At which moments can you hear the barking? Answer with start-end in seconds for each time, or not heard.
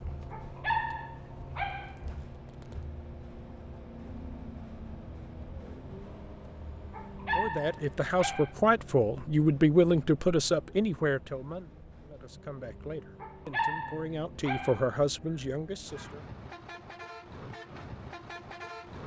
0.3-1.9, 6.9-8.5, 13.2-14.8.